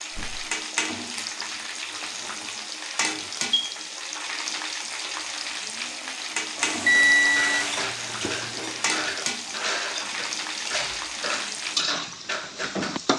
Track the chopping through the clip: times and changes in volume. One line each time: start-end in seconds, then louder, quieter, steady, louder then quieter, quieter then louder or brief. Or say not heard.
not heard.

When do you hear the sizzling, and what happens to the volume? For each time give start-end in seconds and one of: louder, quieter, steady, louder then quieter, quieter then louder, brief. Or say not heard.
0.0-13.1 steady.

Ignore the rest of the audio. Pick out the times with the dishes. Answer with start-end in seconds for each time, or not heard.
6.8-13.0.